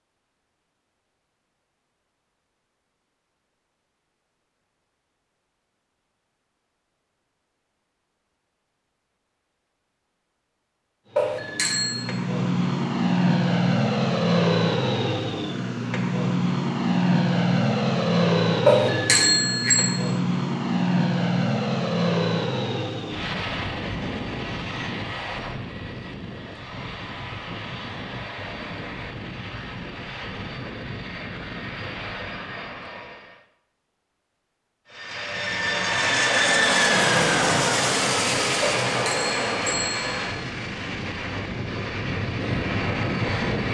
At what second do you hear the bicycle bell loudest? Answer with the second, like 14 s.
19 s.